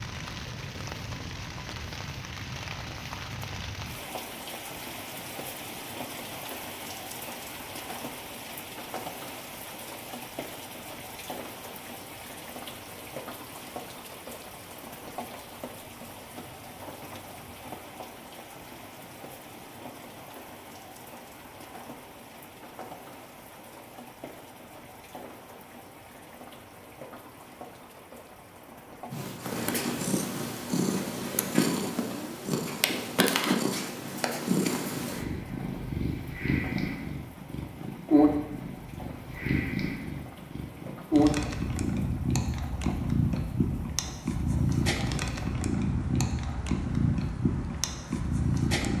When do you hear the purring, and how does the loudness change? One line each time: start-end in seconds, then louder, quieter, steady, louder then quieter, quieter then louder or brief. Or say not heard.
29.1-48.9 steady.